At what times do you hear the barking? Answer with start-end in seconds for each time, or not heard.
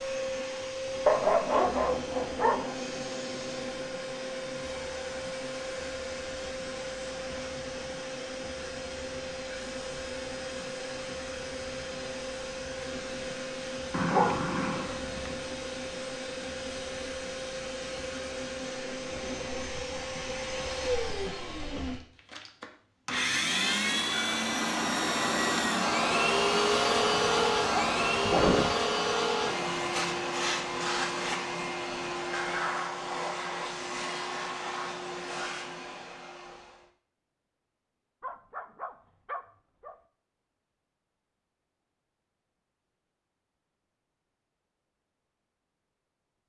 1.1-2.8, 13.9-15.3, 27.2-28.8, 38.2-40.0.